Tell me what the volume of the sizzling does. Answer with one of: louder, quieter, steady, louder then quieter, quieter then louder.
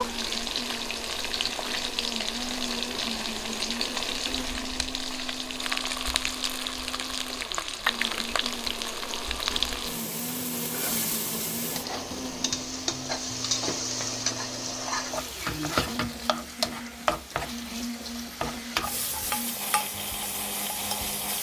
steady.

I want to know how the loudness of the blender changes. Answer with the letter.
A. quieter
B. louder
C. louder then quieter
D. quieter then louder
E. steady
E.